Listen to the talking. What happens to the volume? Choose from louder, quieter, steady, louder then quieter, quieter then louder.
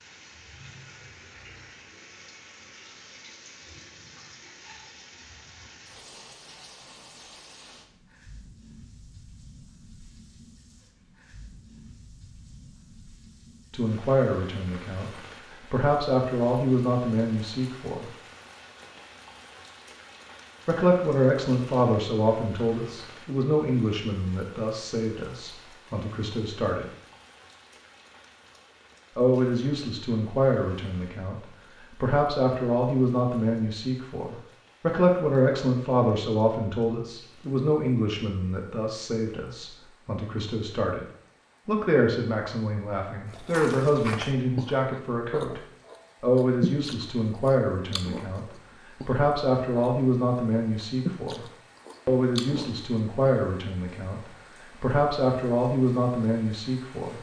steady.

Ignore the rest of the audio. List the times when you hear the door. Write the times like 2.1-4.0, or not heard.
not heard.